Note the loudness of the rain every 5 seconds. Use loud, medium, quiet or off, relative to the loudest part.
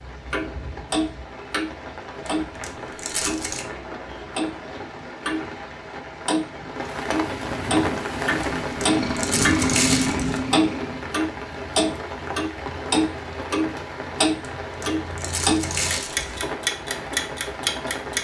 medium, loud, loud, loud.